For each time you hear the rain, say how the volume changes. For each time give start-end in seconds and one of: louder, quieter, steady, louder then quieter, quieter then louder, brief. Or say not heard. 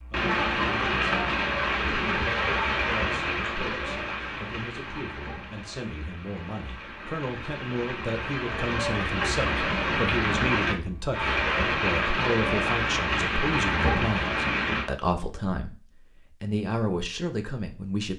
0.0-14.9 quieter then louder.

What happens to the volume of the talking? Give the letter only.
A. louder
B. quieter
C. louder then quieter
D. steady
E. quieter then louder
A.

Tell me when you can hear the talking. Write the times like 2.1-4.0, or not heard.
0.0-18.1.